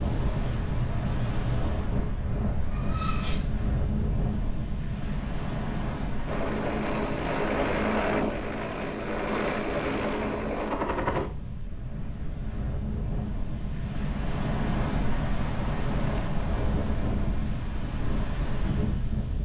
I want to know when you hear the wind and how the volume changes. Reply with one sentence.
You can hear the wind from 0.0 to 19.3 s, getting quieter then louder.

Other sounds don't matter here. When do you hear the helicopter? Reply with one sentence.
You can hear the helicopter from 6.2 to 11.3 s.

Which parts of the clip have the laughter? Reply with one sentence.
The laughter can be heard from 2.6 to 3.5 s.